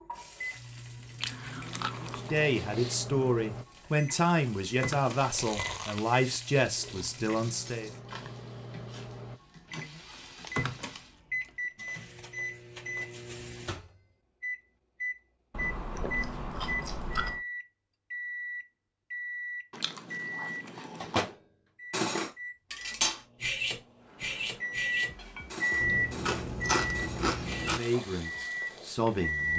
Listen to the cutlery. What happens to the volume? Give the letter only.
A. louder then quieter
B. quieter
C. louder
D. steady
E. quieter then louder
B.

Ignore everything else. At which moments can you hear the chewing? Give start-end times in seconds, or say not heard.
1.2-3.0, 5.2-7.2, 10.4-11.9, 15.5-17.4, 19.7-21.3, 25.8-27.8.